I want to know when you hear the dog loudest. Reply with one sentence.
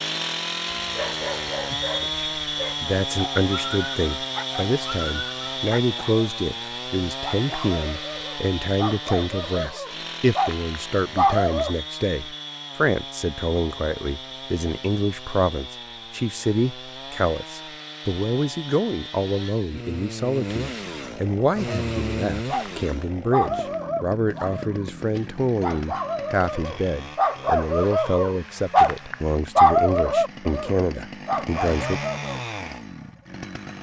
The volume of the dog peaks at 30 seconds.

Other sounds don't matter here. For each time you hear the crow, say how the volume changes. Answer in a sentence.
The crow can't be heard in this clip.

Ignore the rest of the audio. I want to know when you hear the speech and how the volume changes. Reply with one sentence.
The speech can be heard from 2.0 to 32.0 s, at a steady volume.